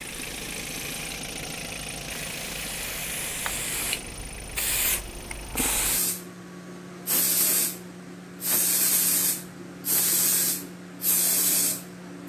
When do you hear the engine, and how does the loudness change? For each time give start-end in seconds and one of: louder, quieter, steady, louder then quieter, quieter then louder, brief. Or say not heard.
0.0-5.8 quieter.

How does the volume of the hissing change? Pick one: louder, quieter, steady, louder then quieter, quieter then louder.
louder.